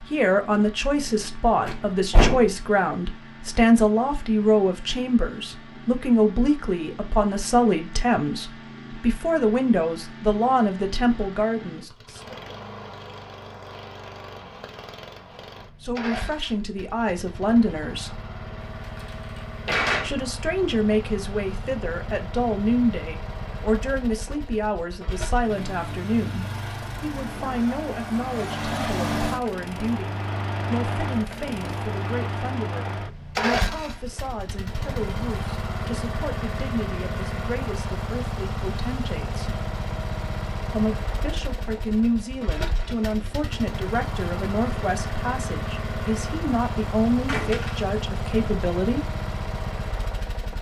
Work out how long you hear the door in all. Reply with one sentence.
The door can be heard for 3 seconds in total.